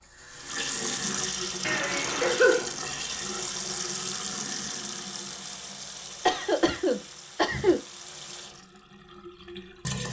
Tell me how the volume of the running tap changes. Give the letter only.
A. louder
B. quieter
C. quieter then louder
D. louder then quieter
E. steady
B.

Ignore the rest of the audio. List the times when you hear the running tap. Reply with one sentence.
You can hear the running tap from 0.0 to 10.0 s.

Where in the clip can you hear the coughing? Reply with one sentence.
The coughing can be heard from 1.6 to 2.8 s and from 6.2 to 7.8 s.